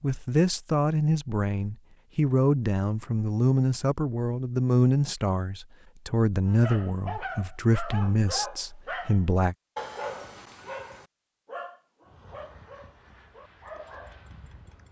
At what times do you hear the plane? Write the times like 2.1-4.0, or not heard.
12.0-14.8.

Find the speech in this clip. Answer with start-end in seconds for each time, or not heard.
0.0-9.6.